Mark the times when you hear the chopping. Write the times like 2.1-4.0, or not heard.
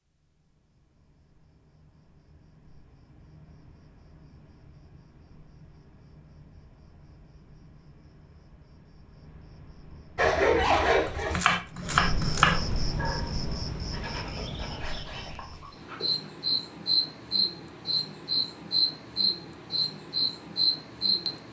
11.1-12.7.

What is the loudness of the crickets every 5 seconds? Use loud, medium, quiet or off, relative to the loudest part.
quiet, quiet, medium, loud, loud.